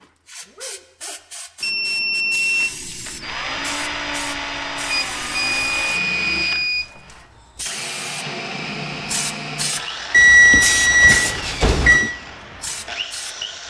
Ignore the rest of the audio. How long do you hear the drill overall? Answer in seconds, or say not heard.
11 s.